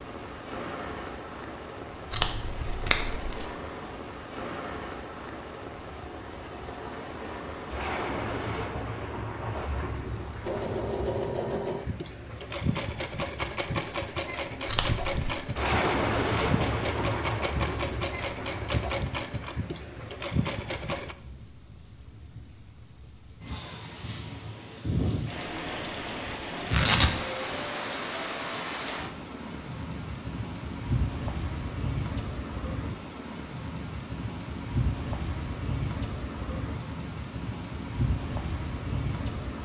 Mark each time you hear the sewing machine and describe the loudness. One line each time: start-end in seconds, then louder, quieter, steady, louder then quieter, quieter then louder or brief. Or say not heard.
10.4-21.1 steady.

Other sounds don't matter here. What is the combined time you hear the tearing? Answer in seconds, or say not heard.
3 s.